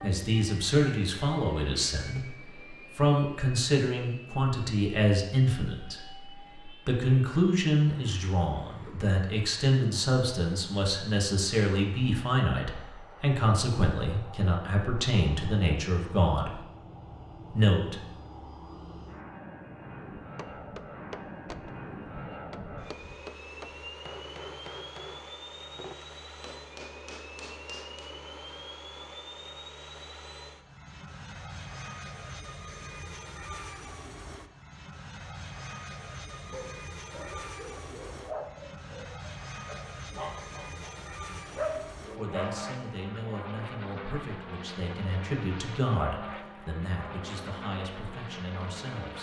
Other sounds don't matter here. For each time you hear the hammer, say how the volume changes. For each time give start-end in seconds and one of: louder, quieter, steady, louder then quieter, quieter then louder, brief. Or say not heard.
20.2-28.1 steady.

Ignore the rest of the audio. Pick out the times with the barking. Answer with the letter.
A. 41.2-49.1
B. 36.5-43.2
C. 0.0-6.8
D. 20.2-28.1
B.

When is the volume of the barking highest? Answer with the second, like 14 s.
42 s.